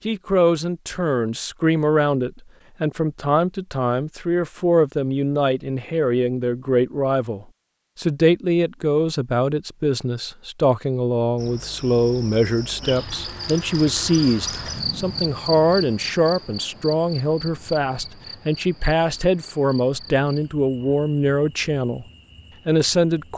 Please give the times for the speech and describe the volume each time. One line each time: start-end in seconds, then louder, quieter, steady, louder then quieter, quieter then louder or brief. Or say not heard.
0.1-22.1 steady
22.6-23.3 brief.